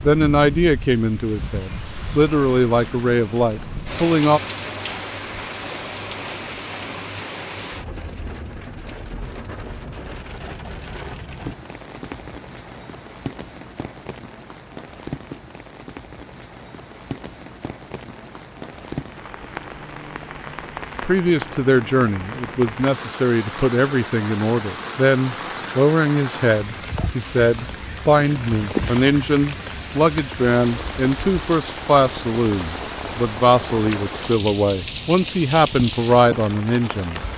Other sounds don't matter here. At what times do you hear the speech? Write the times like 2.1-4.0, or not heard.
0.0-4.4, 21.0-37.2.